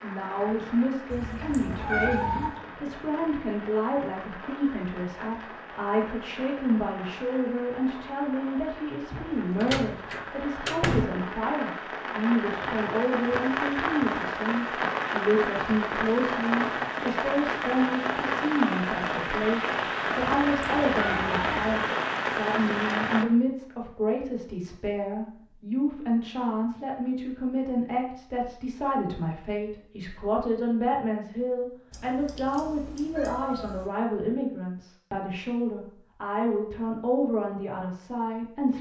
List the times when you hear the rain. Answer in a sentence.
You can hear the rain from 0.0 to 23.2 s.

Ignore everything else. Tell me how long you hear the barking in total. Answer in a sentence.
You can't hear the barking here.